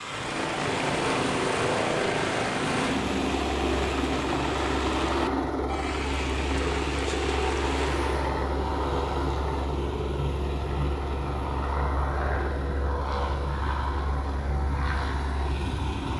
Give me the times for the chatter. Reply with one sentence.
You can't hear the chatter here.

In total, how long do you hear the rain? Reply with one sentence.
You can hear the rain for 8 seconds altogether.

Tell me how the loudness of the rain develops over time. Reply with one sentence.
The loudness of the rain stays about the same.